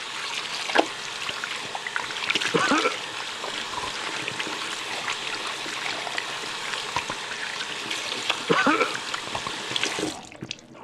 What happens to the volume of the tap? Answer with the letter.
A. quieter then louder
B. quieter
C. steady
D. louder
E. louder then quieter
C.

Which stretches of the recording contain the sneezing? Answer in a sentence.
The sneezing can be heard from 2.5 to 3.0 s and from 8.4 to 8.9 s.